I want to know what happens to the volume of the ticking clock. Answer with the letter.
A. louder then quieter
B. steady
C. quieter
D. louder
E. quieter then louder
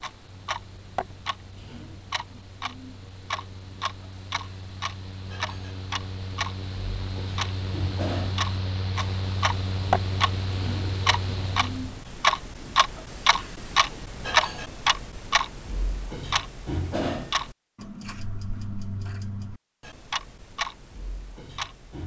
A.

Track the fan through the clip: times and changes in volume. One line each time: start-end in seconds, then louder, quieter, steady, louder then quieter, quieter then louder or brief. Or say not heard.
0.0-12.0 louder.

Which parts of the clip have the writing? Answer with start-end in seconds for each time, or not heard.
not heard.